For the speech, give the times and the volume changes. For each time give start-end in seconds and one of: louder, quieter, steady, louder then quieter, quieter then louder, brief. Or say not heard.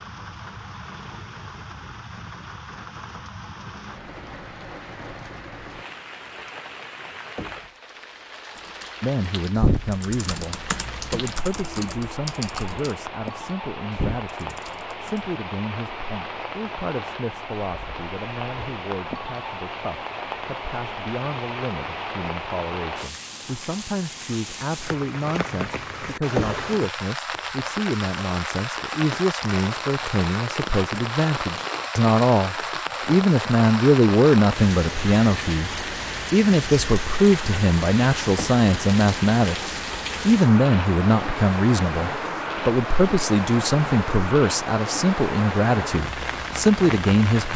9.0-47.5 louder.